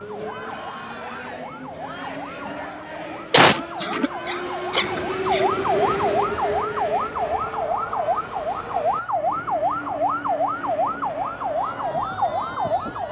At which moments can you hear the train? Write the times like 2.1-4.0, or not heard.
0.0-13.0.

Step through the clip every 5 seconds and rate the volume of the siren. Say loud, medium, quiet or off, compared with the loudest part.
quiet, loud, loud.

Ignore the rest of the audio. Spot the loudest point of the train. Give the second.
6 s.